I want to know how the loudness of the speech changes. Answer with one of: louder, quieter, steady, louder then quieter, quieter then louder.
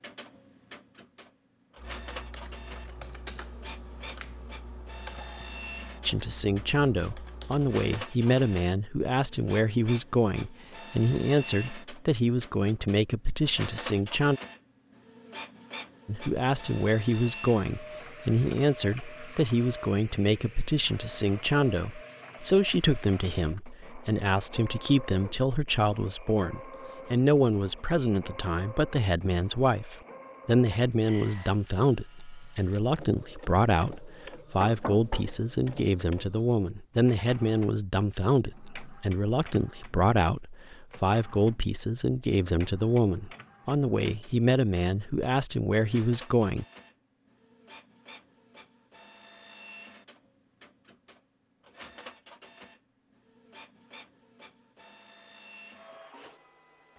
steady.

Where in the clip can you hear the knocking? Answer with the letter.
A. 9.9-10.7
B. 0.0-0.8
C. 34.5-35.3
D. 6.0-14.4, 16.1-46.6
C.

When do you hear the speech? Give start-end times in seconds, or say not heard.
6.0-14.4, 16.1-46.6.